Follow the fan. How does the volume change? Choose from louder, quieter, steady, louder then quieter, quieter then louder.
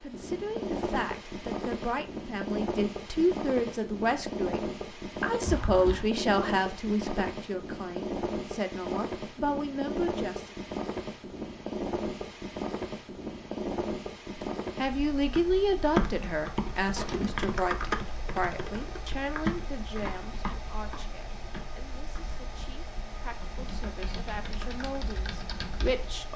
quieter.